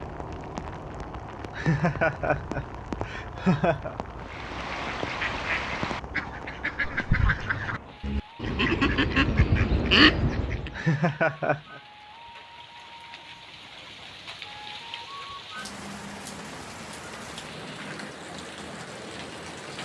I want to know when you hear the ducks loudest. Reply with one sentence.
The loudest moment of the ducks is at 10 seconds.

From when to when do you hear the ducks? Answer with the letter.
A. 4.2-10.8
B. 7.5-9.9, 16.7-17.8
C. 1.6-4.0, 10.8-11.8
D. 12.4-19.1
A.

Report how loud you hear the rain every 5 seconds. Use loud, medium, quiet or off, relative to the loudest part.
loud, loud, medium, loud.